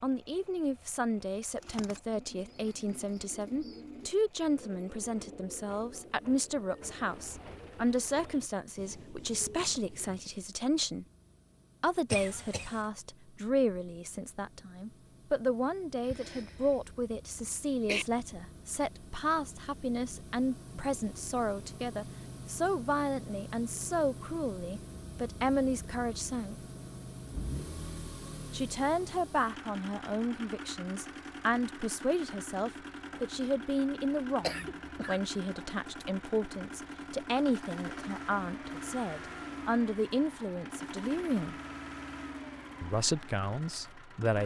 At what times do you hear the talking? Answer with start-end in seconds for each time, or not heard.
0.0-11.1, 11.8-26.6, 28.5-41.5, 42.8-44.4.